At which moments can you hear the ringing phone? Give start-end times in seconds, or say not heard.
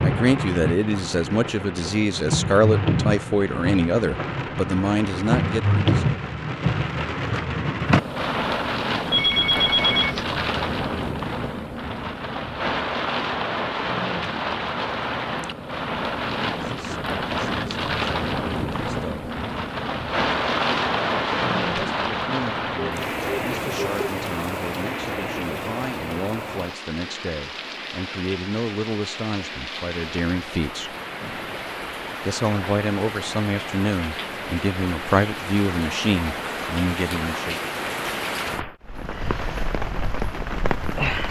9.1-10.2, 22.8-24.1, 31.2-31.6.